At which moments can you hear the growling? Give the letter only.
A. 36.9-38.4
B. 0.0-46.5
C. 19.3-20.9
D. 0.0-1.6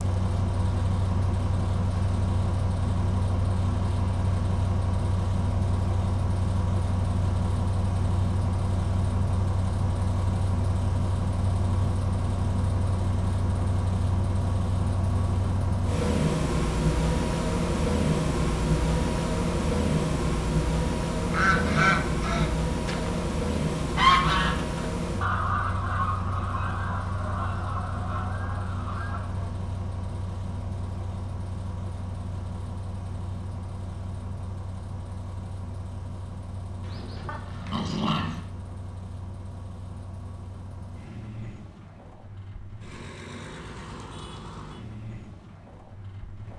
A.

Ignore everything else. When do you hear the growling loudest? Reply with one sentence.
The volume of the growling peaks at 38 seconds.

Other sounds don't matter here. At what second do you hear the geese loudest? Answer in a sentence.
The loudest moment of the geese is at 24 seconds.